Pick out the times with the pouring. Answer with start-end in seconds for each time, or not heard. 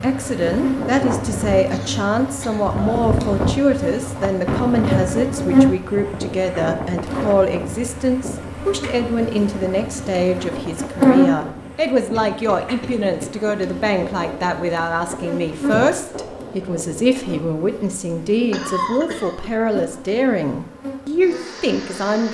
not heard.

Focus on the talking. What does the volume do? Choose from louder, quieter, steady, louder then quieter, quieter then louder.
steady.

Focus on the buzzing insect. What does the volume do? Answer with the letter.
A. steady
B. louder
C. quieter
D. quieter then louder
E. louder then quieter
E.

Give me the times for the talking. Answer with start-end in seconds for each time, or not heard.
0.0-22.2.